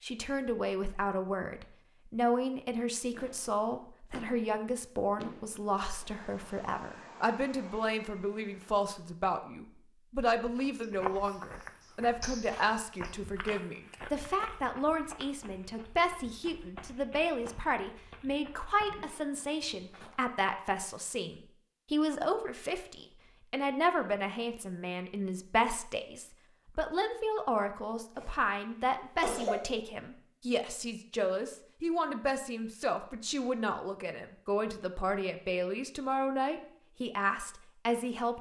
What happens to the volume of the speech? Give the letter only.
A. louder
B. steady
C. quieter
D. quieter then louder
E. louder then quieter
B.